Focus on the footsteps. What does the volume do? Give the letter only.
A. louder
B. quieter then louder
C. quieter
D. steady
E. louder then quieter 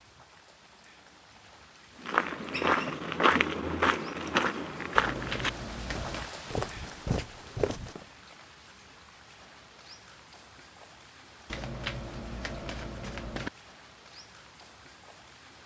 B.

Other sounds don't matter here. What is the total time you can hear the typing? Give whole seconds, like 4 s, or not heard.
not heard.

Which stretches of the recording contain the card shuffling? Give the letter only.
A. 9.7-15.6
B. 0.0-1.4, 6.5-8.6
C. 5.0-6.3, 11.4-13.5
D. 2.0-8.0
C.